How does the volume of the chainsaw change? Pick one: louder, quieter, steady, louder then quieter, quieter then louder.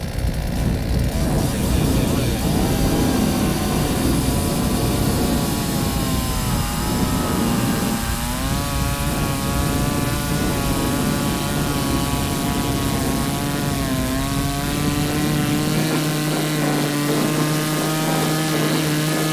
louder.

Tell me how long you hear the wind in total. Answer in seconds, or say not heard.
19 s.